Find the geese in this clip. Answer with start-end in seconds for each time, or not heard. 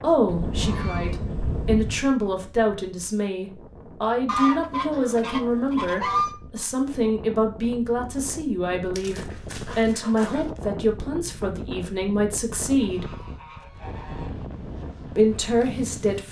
0.2-2.0, 4.2-6.3, 8.9-10.4, 12.6-14.4.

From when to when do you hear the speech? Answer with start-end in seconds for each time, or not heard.
0.0-13.1, 15.2-16.2.